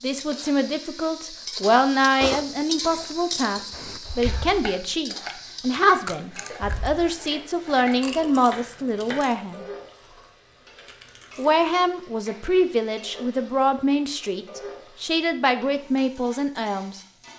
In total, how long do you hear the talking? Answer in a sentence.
You can hear the talking for 15 seconds altogether.